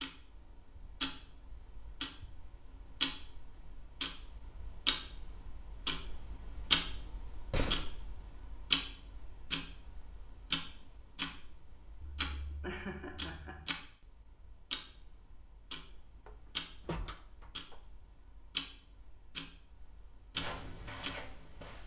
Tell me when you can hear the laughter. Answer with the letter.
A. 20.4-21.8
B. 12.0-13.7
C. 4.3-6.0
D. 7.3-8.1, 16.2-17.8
B.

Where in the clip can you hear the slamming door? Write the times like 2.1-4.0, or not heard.
7.3-8.1, 16.2-17.8.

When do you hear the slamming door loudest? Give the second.
8 s.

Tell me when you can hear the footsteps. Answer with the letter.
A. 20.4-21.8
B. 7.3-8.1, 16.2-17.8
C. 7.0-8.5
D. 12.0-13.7
A.